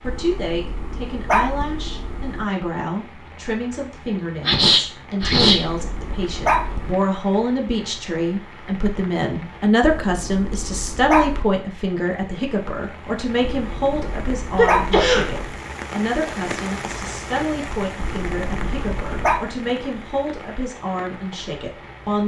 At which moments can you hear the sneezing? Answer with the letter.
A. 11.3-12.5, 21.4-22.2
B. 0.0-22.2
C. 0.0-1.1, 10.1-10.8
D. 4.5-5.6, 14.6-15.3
D.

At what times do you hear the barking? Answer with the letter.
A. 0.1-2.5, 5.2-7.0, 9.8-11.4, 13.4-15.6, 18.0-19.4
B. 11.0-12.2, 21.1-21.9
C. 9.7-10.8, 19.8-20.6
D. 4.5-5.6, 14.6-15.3
A.